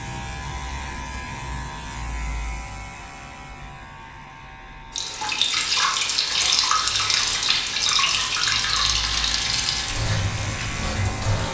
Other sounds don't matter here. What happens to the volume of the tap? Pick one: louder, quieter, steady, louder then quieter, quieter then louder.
quieter.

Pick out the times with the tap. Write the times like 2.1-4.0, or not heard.
4.9-11.4.